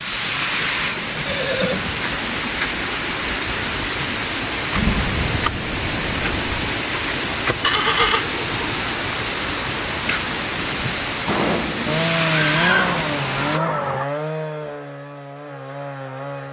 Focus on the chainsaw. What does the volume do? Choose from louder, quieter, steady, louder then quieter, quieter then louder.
quieter.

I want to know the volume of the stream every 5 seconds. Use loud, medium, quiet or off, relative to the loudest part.
loud, loud, loud, off.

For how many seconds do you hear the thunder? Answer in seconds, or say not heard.
2 s.